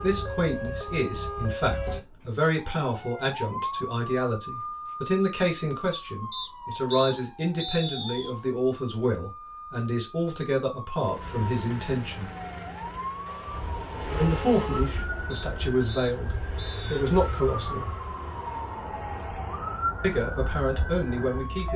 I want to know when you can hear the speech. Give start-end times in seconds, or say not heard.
0.0-12.3, 14.2-17.9, 20.0-21.7.